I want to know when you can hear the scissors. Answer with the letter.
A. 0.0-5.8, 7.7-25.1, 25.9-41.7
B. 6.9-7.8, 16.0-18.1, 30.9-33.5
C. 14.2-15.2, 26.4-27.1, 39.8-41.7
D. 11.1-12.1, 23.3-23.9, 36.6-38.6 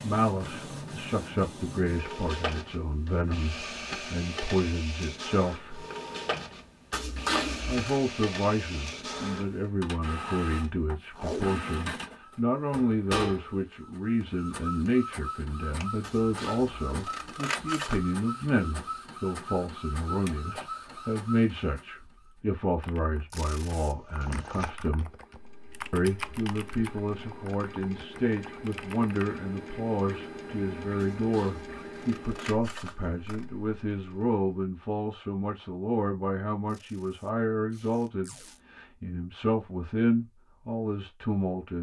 B.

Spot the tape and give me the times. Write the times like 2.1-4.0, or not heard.
11.1-12.1, 23.3-23.9, 36.6-38.6.